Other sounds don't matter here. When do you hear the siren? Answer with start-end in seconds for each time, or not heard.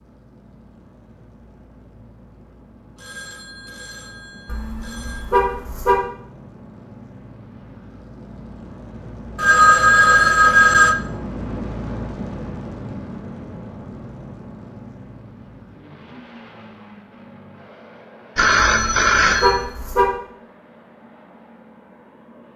not heard.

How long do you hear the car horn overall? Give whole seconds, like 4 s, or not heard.
3 s.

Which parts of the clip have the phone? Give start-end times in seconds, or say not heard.
3.0-5.2, 9.3-10.9, 18.4-19.7.